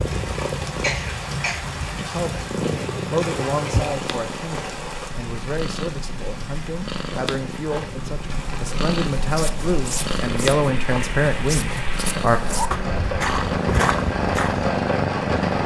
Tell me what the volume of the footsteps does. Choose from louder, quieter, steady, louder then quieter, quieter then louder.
quieter then louder.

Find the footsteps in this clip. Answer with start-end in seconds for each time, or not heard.
9.2-14.7.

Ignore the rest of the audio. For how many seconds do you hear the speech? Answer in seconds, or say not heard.
10 s.